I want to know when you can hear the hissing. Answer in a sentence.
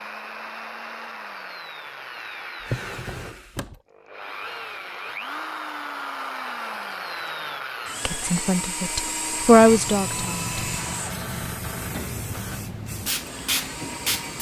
You can hear the hissing from 9.4 to 14.3 s.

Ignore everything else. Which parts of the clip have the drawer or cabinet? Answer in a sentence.
The drawer or cabinet can be heard from 2.6 to 3.8 s.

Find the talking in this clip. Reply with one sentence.
You can hear the talking from 8.1 to 10.5 s.